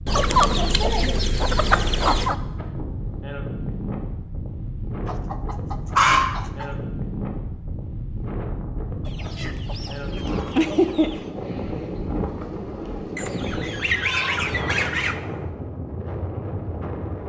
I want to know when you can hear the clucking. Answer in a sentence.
You can hear the clucking from 0.1 to 2.4 s, from 5.0 to 6.7 s, from 9.1 to 11.2 s and from 13.2 to 15.2 s.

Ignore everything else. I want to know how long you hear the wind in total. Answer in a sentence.
You can hear the wind for 17 seconds altogether.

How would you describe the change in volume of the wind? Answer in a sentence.
The loudness of the wind stays about the same.